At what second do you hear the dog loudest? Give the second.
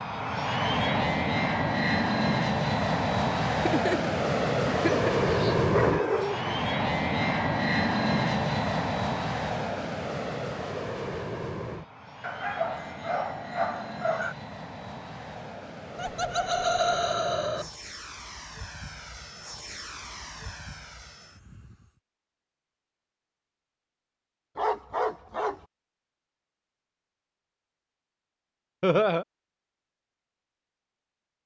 6 s.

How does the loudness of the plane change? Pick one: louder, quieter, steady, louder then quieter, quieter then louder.
quieter.